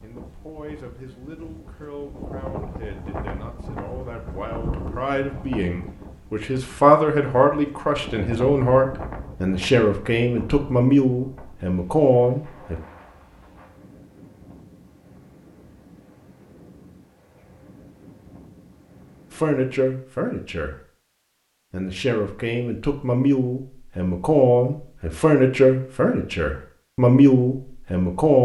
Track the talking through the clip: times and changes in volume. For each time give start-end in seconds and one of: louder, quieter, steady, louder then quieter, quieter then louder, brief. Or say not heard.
0.0-12.8 louder
19.3-20.8 brief
21.7-28.3 louder.